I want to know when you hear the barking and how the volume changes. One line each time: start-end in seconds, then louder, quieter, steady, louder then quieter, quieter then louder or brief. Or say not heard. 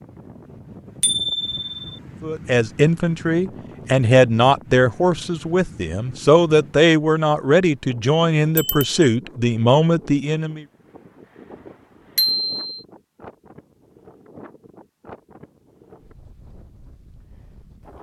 not heard.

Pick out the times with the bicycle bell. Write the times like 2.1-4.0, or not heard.
1.0-1.8, 8.6-9.1, 12.2-12.8.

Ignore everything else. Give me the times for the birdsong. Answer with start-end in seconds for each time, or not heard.
not heard.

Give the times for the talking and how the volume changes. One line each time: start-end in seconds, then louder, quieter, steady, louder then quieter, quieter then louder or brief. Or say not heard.
2.2-10.7 steady.